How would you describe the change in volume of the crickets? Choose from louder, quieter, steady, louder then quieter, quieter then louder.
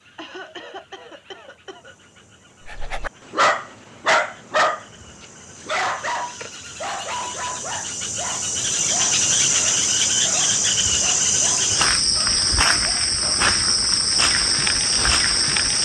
louder.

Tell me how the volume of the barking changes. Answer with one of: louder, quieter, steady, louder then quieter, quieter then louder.
quieter.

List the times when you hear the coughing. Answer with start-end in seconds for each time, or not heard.
0.1-1.9.